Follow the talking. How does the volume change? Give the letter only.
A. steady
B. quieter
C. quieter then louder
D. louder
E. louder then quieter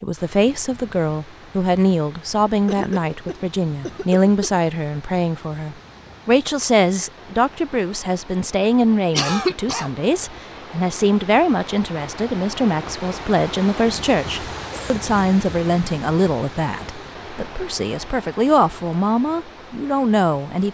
A.